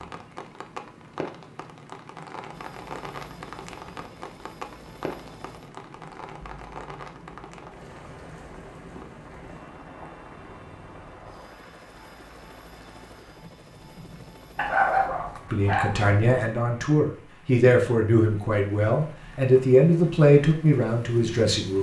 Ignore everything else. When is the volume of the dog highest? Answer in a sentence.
The loudest moment of the dog is at 15 seconds.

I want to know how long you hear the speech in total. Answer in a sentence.
You can hear the speech for 6 seconds altogether.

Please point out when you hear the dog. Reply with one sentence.
You can hear the dog from 14.6 to 16.1 s.